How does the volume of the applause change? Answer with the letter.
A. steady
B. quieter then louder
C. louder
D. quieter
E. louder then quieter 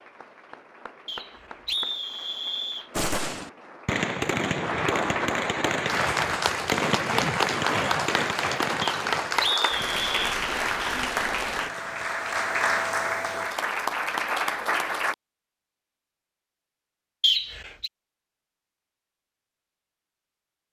C.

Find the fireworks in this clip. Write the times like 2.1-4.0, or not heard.
2.9-12.2.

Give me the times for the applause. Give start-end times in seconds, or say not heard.
0.0-15.2.